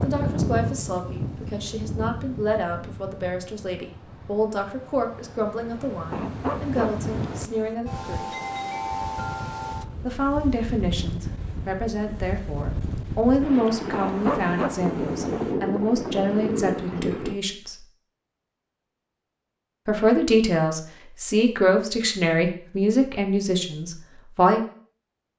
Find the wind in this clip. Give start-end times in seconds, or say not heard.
0.0-17.4.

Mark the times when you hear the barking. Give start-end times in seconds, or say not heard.
6.1-7.8, 13.9-15.6.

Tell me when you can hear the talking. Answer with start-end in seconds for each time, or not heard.
0.0-8.3, 10.0-17.8, 19.9-24.6.